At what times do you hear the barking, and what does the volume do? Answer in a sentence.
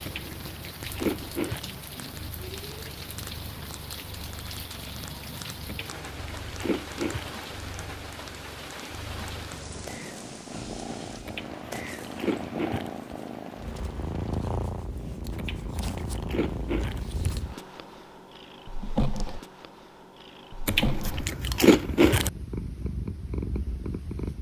You can't hear the barking here.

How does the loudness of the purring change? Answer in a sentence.
The volume of the purring goes up.